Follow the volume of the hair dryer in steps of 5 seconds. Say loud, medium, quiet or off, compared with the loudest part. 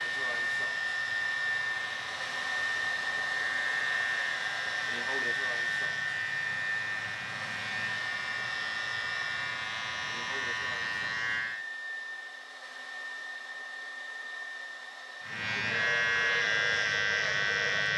loud, loud, medium, medium.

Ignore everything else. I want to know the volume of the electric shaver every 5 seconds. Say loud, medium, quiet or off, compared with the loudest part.
medium, medium, medium, loud.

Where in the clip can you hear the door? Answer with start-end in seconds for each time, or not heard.
not heard.